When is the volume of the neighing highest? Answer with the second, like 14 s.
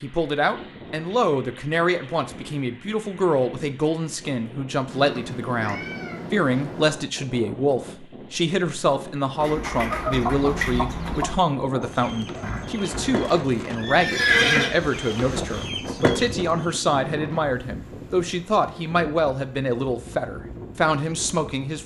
14 s.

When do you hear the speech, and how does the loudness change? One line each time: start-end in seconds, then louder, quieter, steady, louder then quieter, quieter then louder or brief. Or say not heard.
0.0-21.8 steady.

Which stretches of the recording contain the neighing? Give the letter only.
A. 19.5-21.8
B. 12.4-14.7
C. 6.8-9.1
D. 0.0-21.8
B.